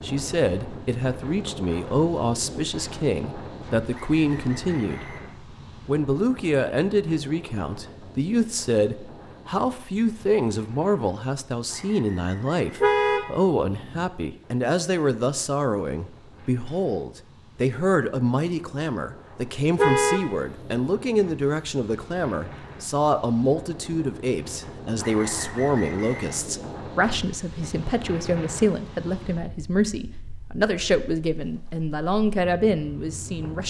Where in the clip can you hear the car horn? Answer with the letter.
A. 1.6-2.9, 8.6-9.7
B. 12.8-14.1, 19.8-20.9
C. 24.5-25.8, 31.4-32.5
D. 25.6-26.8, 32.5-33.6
B.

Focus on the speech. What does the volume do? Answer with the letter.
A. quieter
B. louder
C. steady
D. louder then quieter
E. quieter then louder
C.